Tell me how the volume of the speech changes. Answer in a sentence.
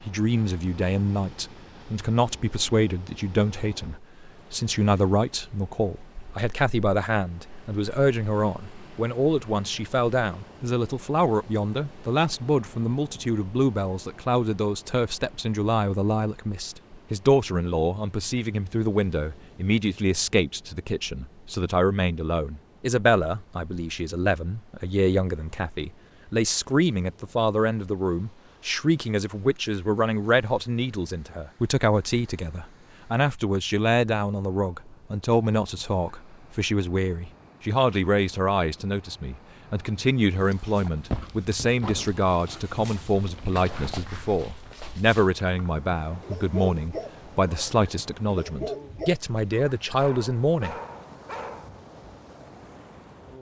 The loudness of the speech stays about the same.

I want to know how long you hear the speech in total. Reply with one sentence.
You can hear the speech for 51 seconds altogether.